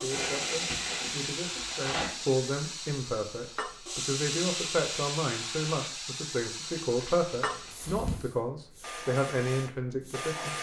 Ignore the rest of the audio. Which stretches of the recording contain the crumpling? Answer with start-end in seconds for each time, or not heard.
0.1-2.1, 6.8-8.2.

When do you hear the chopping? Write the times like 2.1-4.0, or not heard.
not heard.